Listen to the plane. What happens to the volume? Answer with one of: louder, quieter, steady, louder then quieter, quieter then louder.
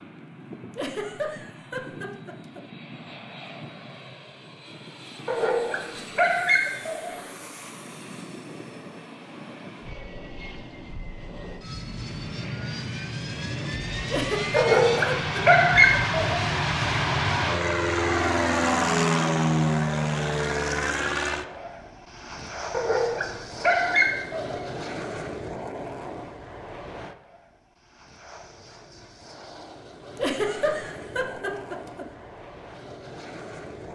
louder then quieter.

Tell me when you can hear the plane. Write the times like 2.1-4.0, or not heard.
0.0-33.9.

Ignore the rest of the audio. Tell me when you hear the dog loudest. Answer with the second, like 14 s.
16 s.